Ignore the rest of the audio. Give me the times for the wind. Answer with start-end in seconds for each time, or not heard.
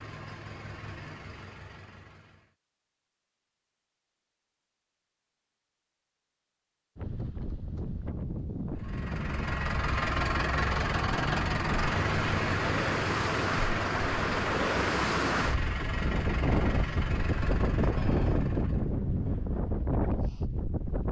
7.0-21.0.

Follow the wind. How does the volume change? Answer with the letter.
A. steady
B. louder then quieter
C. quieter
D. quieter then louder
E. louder
E.